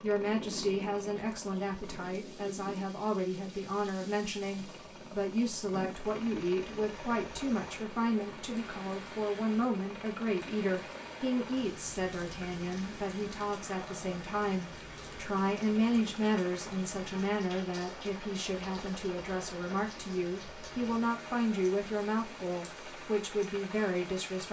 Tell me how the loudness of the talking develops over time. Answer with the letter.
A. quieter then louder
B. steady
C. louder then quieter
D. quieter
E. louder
B.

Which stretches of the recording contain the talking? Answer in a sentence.
The talking can be heard from 0.0 to 24.4 s.